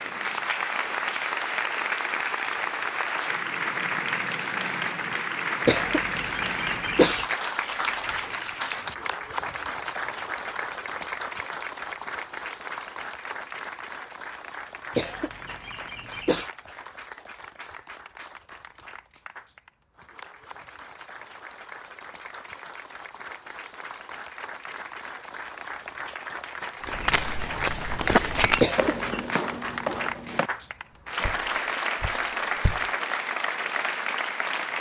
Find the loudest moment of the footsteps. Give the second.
28 s.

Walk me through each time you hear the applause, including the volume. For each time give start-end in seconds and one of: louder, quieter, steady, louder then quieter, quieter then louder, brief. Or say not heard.
0.0-34.7 quieter then louder.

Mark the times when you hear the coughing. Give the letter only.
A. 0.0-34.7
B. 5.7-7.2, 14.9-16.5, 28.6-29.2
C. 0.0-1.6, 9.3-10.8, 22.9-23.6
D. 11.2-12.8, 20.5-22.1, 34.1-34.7
B.